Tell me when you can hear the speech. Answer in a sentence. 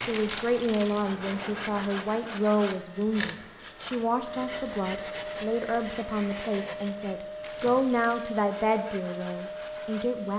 You can hear the speech from 0.0 to 10.3 s.